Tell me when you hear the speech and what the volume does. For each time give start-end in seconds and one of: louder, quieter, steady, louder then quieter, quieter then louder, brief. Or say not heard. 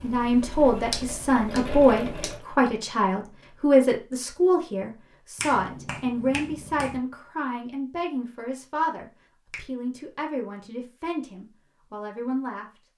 0.0-12.7 quieter.